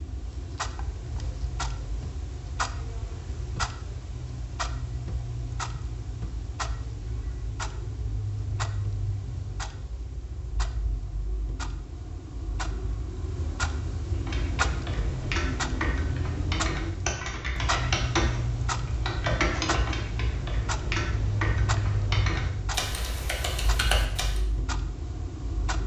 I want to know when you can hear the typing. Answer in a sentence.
The typing can be heard from 14.2 to 24.4 s.